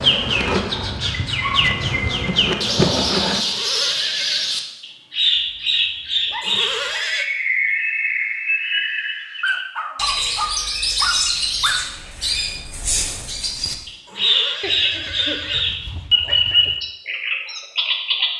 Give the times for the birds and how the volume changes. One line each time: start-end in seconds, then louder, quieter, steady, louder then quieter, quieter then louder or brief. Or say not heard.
0.0-18.3 steady.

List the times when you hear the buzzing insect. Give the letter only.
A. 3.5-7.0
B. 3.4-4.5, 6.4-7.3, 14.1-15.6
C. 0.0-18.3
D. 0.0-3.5
D.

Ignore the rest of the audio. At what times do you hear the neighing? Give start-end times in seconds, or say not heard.
3.4-4.5, 6.4-7.3, 14.1-15.6.